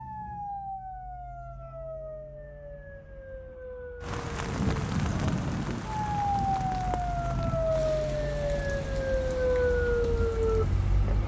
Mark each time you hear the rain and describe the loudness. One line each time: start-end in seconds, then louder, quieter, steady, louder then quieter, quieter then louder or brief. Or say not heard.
4.0-11.2 quieter.